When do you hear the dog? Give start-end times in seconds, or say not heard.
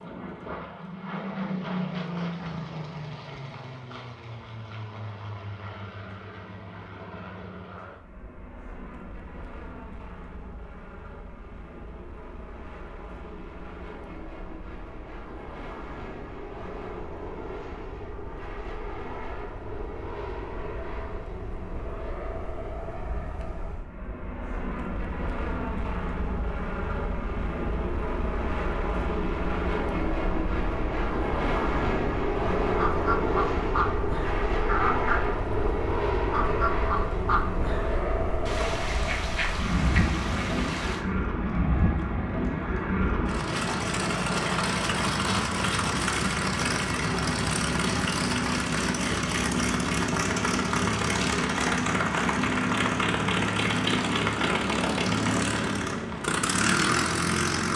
not heard.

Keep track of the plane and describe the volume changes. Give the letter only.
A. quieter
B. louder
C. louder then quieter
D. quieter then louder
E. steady
B.